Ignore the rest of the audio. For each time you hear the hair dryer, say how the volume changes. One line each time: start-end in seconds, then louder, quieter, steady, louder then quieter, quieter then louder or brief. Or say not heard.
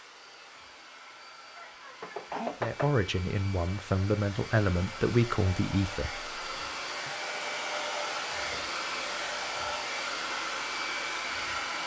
0.0-11.8 louder.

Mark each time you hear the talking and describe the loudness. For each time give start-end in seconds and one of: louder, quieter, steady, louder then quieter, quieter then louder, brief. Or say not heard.
2.6-7.1 louder then quieter.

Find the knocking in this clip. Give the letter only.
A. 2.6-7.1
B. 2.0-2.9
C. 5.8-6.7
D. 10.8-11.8
B.